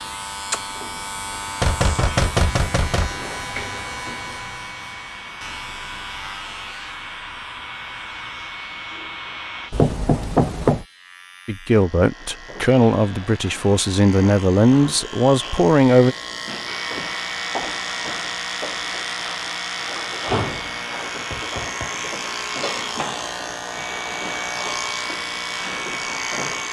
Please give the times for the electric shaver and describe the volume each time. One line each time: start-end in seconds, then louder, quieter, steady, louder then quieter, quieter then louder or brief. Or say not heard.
0.0-26.6 quieter then louder.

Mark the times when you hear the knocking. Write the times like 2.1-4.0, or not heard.
1.6-3.1, 9.7-10.8, 21.3-21.9.